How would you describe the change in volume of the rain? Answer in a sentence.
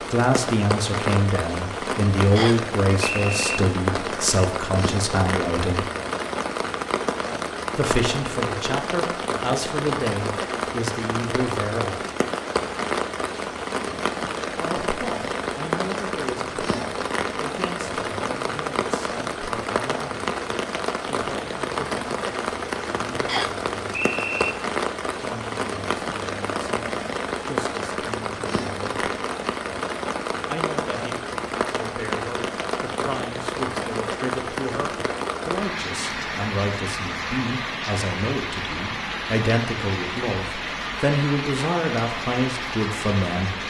The volume of the rain stays about the same.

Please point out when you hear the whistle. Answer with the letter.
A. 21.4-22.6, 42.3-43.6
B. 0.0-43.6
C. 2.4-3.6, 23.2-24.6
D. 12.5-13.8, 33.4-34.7
C.